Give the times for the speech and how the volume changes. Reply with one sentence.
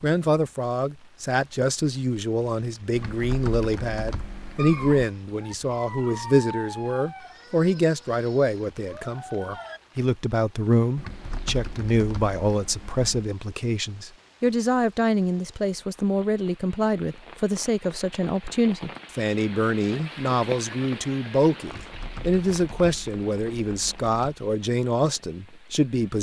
The speech can be heard from 0.0 to 26.1 s, at a steady volume.